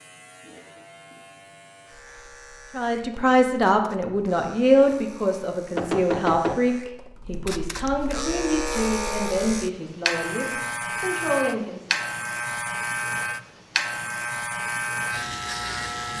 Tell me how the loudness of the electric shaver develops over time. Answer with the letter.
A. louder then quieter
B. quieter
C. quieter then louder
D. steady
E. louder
E.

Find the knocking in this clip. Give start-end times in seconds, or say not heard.
5.8-6.7.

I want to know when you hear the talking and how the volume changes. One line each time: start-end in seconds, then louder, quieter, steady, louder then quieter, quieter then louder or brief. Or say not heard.
2.8-12.0 quieter.